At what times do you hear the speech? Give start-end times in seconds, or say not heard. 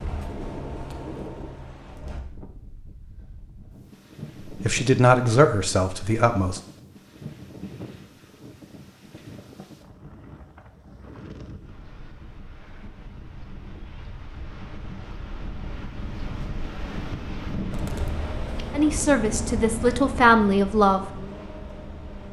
4.5-6.6, 18.8-21.1.